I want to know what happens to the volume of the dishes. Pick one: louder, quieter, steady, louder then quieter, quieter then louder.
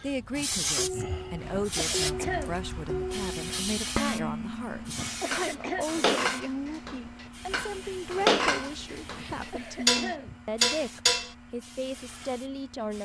louder.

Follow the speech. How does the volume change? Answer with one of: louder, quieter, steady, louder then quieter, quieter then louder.
steady.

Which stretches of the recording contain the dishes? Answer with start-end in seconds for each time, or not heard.
0.3-11.3.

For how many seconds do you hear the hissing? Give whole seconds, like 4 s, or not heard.
13 s.